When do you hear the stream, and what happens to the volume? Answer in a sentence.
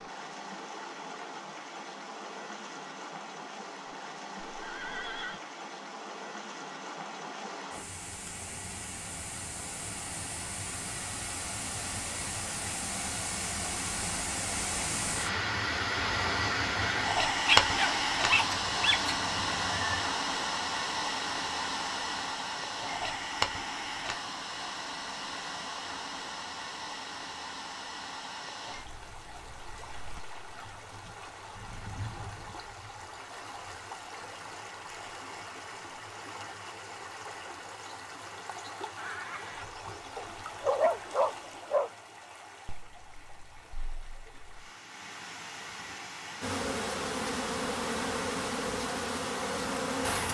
You can hear the stream from 0.0 to 50.0 s, getting louder then quieter.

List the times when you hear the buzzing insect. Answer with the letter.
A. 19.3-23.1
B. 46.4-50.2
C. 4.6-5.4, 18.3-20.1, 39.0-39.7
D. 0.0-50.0
B.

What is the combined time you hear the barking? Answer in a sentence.
You can hear the barking for 3 seconds altogether.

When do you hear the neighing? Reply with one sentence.
You can hear the neighing from 4.6 to 5.4 s, from 18.3 to 20.1 s and from 39.0 to 39.7 s.